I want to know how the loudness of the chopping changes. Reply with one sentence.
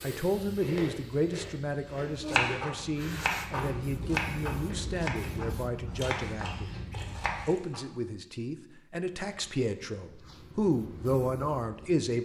The loudness of the chopping goes down.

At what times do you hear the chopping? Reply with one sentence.
You can hear the chopping from 2.0 to 7.8 s.